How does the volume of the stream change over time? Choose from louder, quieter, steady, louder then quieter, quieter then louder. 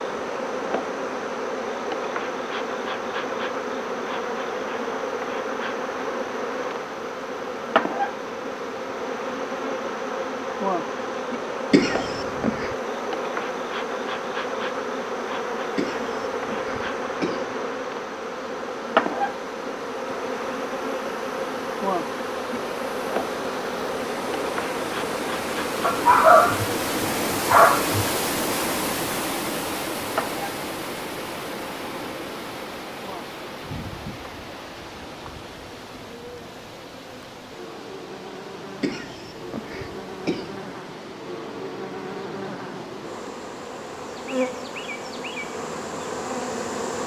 louder then quieter.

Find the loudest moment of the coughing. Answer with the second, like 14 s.
12 s.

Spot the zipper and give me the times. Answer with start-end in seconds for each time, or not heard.
not heard.